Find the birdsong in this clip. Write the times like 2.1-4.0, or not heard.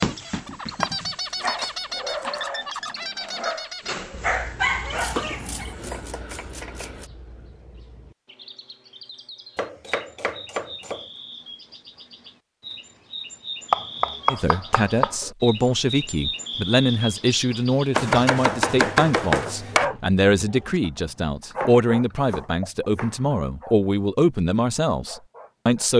0.0-18.2.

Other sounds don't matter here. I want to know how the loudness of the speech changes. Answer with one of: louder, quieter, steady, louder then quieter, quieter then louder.
steady.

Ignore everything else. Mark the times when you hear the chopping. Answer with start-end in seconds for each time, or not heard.
0.8-2.4, 4.9-7.1, 9.6-11.1, 13.7-15.3, 17.9-19.9, 21.6-23.2.